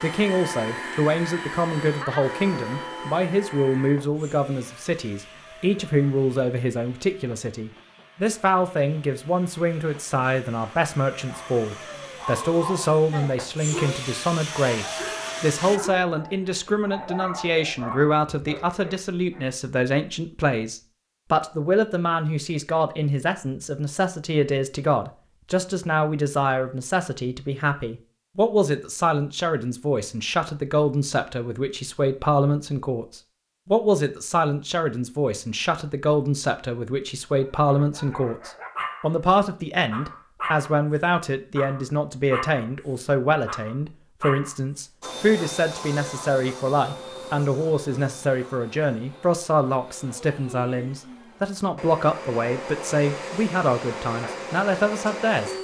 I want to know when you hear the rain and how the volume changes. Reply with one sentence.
The rain can't be heard in this clip.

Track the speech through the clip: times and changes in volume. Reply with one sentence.
The speech can be heard from 0.0 to 55.5 s, at a steady volume.